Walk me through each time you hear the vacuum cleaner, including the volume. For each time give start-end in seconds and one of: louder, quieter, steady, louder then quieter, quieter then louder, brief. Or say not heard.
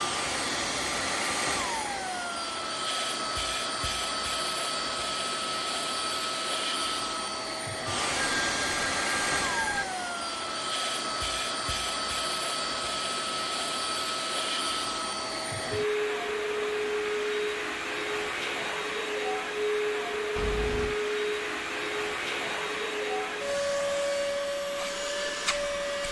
0.0-26.0 steady.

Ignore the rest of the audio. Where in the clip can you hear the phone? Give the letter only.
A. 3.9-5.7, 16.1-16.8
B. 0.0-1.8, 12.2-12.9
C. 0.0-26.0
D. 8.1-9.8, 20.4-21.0
D.